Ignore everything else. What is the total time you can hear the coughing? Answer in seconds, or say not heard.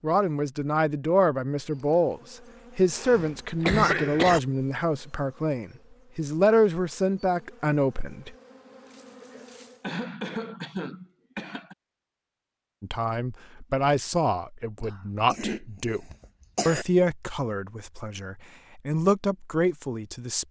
6 s.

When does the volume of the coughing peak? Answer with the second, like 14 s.
4 s.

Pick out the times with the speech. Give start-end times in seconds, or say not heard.
0.0-8.3, 12.8-16.1, 16.6-20.4.